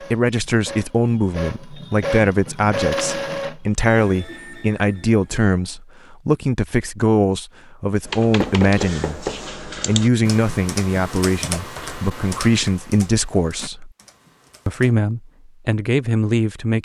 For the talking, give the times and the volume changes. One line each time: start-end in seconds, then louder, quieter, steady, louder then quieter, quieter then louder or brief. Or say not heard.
0.0-13.9 steady
14.7-16.7 brief.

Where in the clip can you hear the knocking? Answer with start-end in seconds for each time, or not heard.
8.4-9.4.